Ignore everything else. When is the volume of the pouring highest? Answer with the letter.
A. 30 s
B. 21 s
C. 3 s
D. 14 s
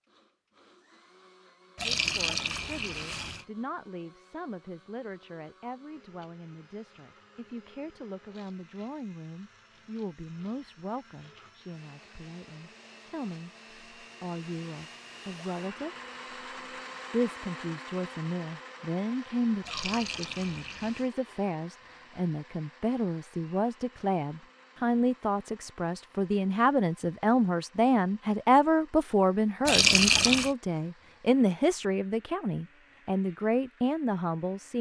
A.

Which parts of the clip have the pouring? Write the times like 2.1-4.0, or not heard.
1.8-3.5, 19.6-21.1, 29.6-30.5.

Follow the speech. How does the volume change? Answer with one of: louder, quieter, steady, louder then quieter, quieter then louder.
louder.